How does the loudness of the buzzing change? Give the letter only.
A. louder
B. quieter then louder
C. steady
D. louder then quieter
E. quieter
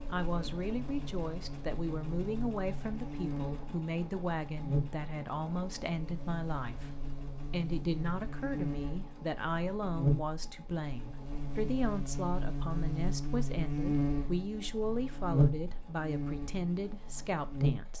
A.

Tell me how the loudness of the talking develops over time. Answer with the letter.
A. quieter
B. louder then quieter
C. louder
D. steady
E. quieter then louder
D.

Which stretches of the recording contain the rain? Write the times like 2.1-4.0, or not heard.
not heard.